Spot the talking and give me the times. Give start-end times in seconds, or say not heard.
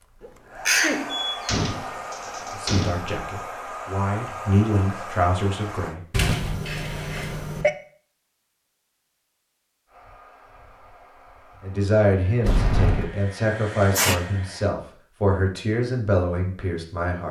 2.5-6.0, 11.6-17.2.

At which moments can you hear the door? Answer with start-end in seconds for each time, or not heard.
1.1-3.0, 6.1-7.7, 12.4-13.1.